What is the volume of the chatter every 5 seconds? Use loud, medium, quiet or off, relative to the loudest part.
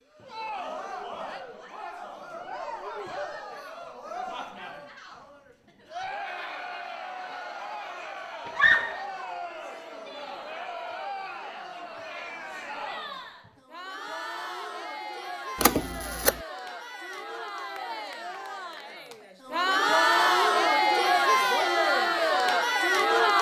quiet, quiet, quiet, medium, loud.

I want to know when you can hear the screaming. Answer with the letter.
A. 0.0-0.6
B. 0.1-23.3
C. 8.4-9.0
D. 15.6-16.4
C.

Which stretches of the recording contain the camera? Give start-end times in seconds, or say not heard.
15.6-16.4.